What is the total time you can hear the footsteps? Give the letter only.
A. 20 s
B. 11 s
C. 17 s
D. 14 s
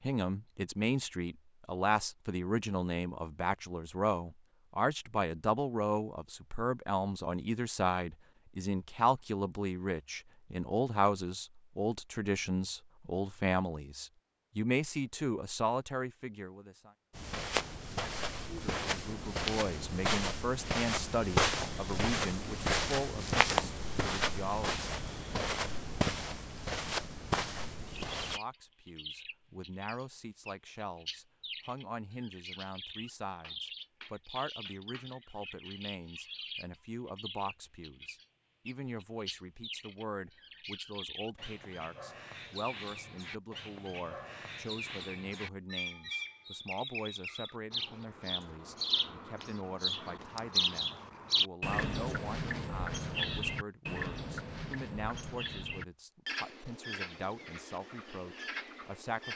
B.